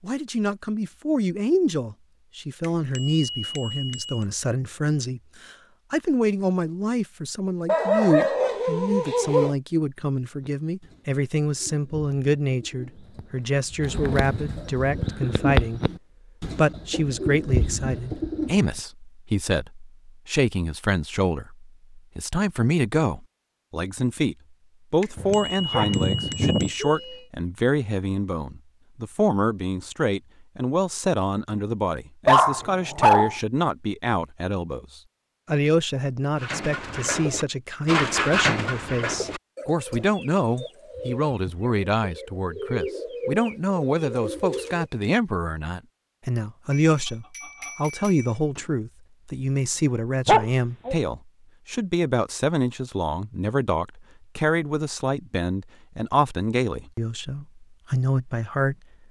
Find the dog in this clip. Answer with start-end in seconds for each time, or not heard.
7.7-9.6, 25.1-26.7, 32.2-33.4, 50.2-51.0.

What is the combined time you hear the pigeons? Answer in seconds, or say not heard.
17 s.